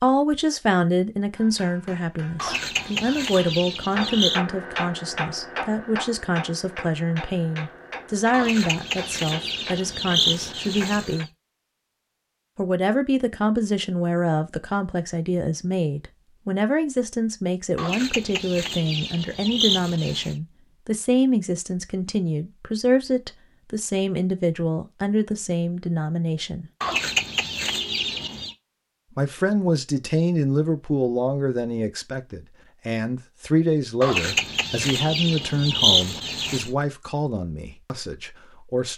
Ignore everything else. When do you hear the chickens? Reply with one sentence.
The chickens can be heard from 2.4 to 4.4 s, from 8.3 to 11.2 s, from 17.8 to 20.4 s, from 26.8 to 28.6 s and from 34.0 to 36.7 s.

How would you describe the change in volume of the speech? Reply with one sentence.
The volume of the speech stays about the same.